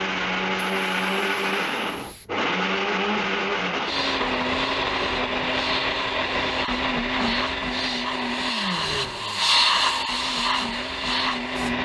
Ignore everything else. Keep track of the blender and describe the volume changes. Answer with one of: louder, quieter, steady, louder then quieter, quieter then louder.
quieter.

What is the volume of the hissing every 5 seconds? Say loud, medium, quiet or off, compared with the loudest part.
medium, loud, loud.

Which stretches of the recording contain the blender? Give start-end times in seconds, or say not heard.
0.0-11.8.